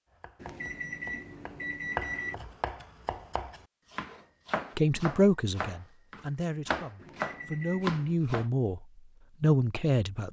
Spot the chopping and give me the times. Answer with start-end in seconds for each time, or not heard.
0.1-8.5.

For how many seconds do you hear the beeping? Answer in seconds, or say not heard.
3 s.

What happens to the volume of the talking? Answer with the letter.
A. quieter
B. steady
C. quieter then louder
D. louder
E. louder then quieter
C.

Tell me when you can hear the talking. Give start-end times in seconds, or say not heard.
4.8-10.2.